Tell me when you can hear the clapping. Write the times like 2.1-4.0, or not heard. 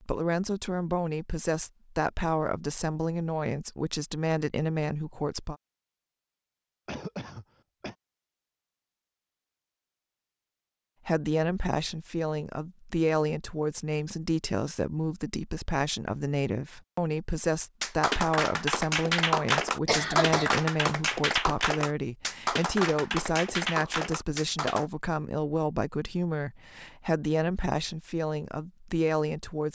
17.8-24.9.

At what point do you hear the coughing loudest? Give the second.
20 s.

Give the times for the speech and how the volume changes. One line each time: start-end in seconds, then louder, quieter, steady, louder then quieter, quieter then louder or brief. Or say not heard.
0.0-5.5 steady
11.1-29.6 steady.